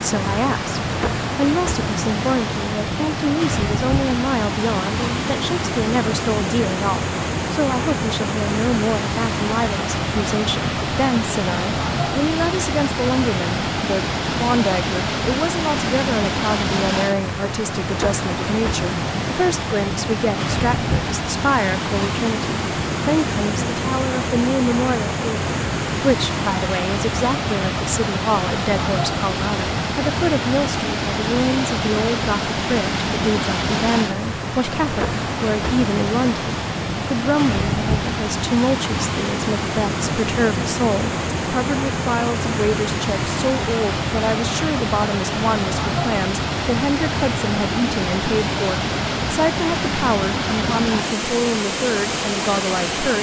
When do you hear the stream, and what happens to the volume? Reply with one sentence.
You can hear the stream from 0.0 to 53.1 s, at a steady volume.